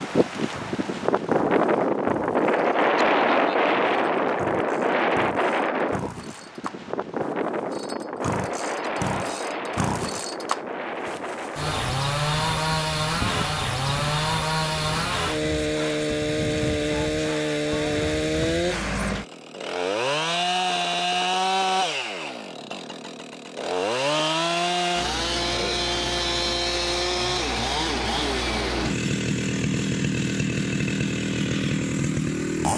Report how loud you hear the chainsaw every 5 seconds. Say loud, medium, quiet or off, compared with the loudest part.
quiet, medium, loud, loud, loud, loud, loud.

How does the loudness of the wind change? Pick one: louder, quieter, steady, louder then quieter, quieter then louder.
quieter.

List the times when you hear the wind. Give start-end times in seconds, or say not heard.
0.0-18.6.